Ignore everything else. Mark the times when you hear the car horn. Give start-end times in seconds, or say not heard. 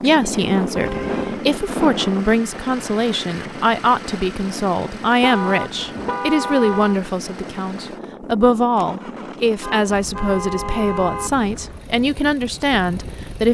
0.8-1.4, 5.2-7.0, 9.6-11.3.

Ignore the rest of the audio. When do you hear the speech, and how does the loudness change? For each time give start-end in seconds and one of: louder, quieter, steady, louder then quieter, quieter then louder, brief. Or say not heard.
0.0-13.4 steady.